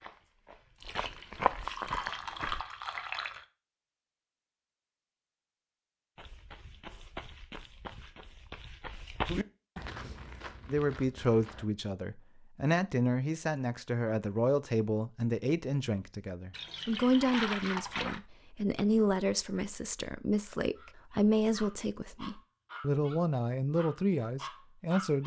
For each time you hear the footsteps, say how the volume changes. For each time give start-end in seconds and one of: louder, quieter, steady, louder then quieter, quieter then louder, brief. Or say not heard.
0.0-2.6 brief
6.2-11.7 louder then quieter.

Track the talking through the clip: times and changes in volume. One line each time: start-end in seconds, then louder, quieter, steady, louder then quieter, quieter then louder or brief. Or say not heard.
10.7-25.2 steady.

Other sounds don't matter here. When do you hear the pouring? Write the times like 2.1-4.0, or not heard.
0.8-3.4, 16.5-18.2.